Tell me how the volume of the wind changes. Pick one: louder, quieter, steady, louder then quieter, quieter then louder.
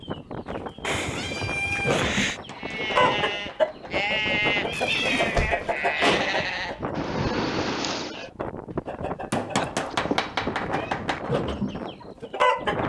steady.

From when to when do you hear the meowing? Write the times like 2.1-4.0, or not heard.
0.8-2.4, 4.4-5.8, 9.6-10.9.